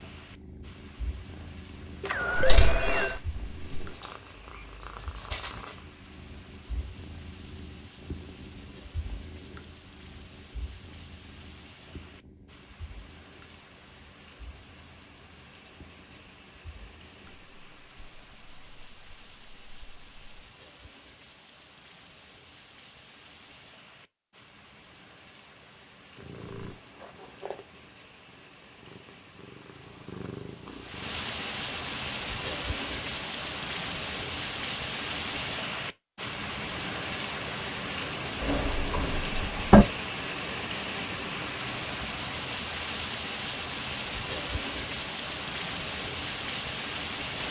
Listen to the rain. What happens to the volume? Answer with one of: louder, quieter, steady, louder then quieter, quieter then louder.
louder.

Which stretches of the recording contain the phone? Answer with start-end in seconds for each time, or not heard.
2.0-3.2.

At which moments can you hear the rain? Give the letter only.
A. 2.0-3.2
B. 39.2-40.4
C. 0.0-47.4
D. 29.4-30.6
C.